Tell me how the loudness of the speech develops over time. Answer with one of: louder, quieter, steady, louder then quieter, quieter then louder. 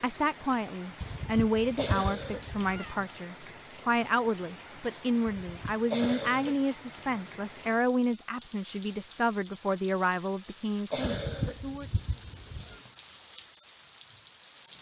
steady.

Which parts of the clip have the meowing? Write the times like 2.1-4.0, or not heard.
1.0-3.0, 5.2-5.8, 11.1-12.8.